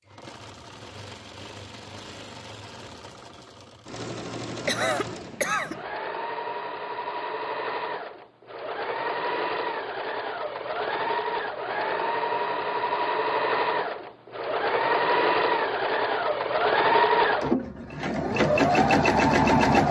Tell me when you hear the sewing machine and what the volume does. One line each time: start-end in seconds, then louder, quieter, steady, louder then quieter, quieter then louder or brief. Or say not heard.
0.0-19.8 louder.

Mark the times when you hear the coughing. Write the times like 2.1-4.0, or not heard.
4.7-5.8.